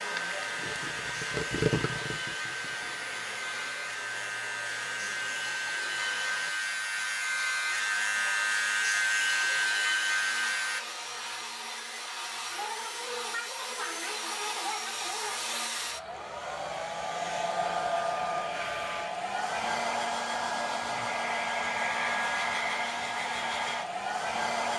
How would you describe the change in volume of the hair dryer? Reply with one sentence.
The volume of the hair dryer goes up.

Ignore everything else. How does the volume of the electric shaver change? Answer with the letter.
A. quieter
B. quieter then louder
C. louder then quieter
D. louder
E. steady
D.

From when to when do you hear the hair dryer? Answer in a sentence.
The hair dryer can be heard from 0.0 to 24.7 s.